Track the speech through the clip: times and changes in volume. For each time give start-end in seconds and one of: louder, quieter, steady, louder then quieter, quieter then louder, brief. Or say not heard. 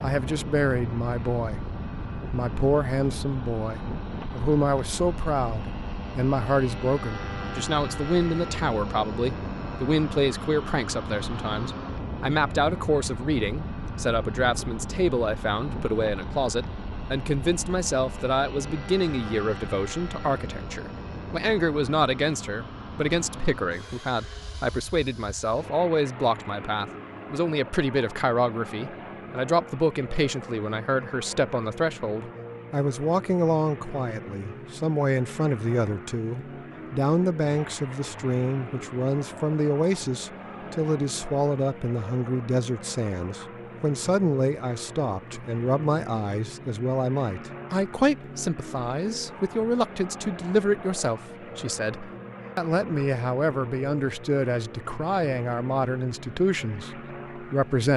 0.0-57.9 steady.